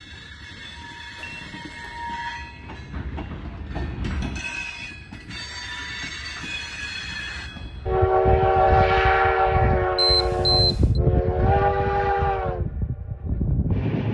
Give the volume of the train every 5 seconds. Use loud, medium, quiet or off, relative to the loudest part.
quiet, loud, loud.